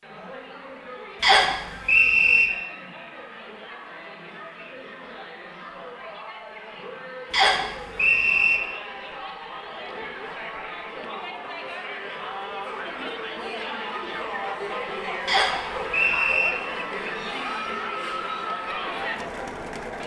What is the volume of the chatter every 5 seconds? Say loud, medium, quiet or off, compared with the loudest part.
medium, medium, loud, loud.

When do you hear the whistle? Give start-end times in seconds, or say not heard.
1.2-2.5, 7.3-8.6, 15.2-16.5.